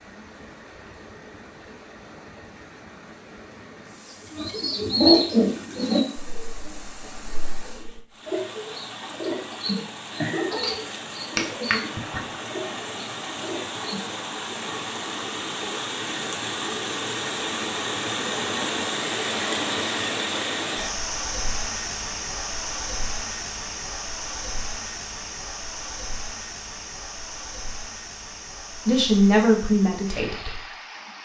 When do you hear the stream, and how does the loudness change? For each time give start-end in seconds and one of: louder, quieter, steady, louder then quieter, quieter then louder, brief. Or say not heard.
0.0-31.2 louder then quieter.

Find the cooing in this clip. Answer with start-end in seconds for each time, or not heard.
4.3-14.1.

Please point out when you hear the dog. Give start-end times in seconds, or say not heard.
not heard.